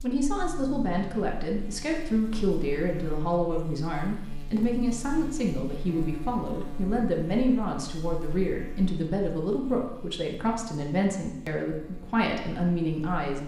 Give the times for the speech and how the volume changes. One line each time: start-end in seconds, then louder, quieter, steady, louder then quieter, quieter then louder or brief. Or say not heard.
0.0-13.4 steady.